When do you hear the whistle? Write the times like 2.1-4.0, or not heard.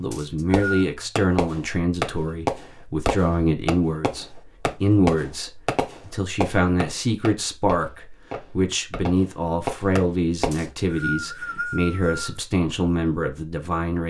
0.1-0.8, 10.5-12.3.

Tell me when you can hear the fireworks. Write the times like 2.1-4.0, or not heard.
0.5-10.7.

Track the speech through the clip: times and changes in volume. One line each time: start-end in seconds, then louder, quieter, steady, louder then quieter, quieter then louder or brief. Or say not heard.
0.0-14.0 steady.